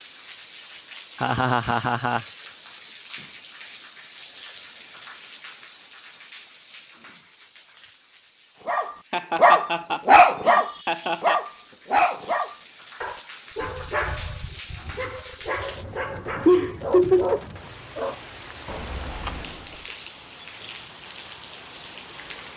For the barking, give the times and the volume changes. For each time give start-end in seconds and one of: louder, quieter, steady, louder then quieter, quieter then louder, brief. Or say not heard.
8.7-19.9 quieter.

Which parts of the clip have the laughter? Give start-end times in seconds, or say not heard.
1.2-2.2, 9.1-11.4, 16.4-17.4.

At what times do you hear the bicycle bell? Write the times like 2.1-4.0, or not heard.
not heard.